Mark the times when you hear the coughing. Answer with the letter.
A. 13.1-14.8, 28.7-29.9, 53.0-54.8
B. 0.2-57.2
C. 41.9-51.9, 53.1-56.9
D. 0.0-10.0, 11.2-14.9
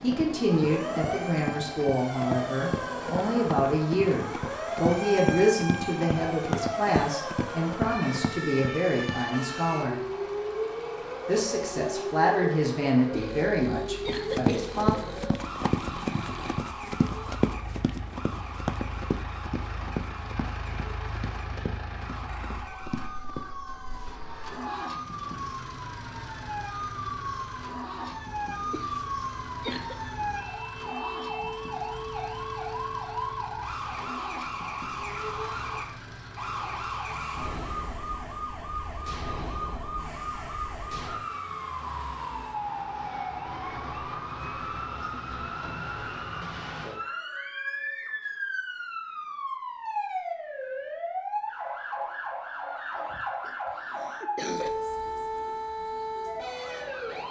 A.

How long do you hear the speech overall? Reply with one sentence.
You can hear the speech for 14 seconds altogether.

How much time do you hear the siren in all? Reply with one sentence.
The siren can be heard for 57 seconds in total.